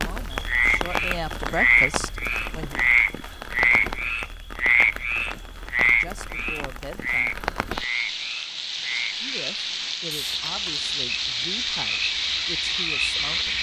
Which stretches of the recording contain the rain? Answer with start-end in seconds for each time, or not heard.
0.0-13.5.